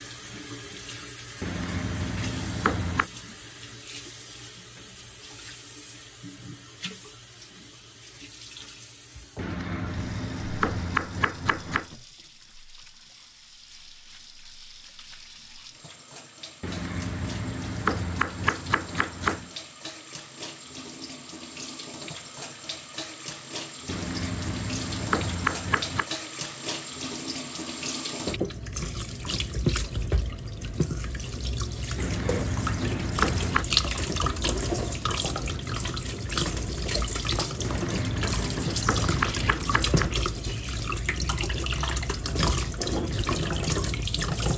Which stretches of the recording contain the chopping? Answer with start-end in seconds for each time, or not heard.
1.4-3.0, 9.3-11.9, 16.6-19.5, 23.9-26.1, 31.9-33.6, 37.6-40.1.